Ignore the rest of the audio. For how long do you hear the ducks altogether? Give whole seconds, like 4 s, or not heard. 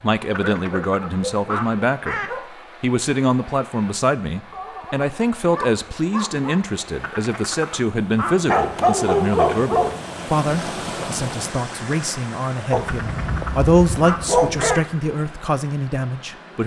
5 s.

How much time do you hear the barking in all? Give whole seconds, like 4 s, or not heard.
8 s.